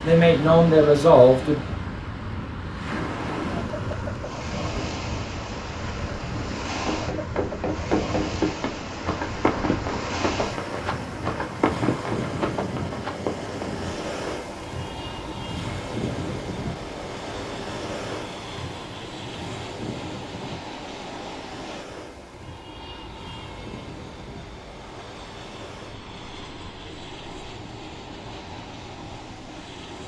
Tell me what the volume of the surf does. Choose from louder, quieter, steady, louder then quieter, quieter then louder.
quieter.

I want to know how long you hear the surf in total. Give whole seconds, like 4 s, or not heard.
30 s.